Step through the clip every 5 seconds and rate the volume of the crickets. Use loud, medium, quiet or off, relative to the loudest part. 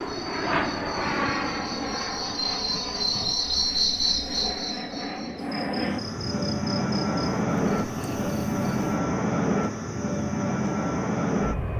loud, medium, off.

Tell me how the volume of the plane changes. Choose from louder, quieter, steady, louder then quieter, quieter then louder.
quieter then louder.